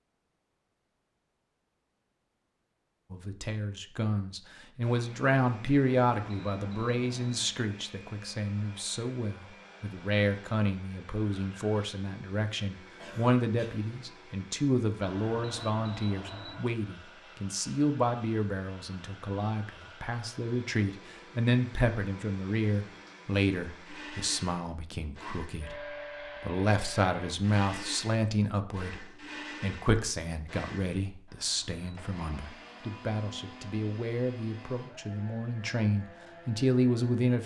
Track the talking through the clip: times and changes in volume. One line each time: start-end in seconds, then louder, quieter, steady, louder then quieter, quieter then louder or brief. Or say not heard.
3.1-37.4 steady.